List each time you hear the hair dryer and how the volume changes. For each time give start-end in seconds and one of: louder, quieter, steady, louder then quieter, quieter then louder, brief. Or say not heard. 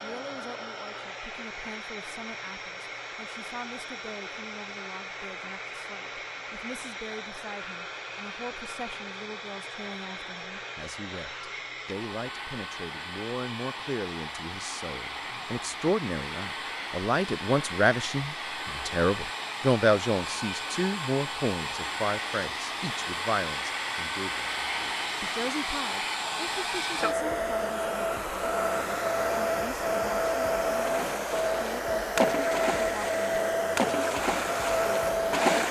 0.0-35.6 louder.